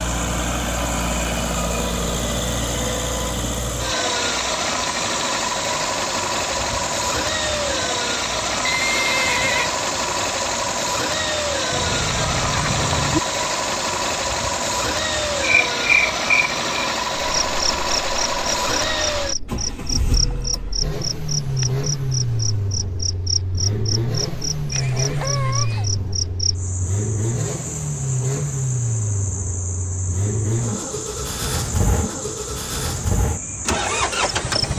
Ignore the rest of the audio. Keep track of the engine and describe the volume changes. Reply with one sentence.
The volume of the engine stays about the same.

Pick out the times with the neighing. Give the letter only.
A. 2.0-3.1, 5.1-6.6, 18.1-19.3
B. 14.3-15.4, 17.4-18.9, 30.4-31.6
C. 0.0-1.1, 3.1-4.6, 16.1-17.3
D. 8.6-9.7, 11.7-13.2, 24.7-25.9
D.